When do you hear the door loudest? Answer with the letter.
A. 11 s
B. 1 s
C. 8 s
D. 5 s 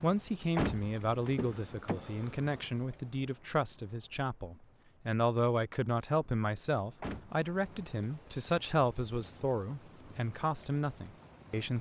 B.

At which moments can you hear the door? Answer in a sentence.
The door can be heard from 0.6 to 2.6 s and from 7.0 to 7.5 s.